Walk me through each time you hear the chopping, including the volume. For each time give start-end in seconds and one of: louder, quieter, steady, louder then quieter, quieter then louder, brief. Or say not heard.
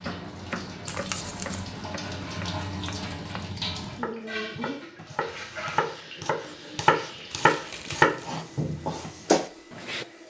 0.1-10.1 louder.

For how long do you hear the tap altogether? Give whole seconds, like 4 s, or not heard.
10 s.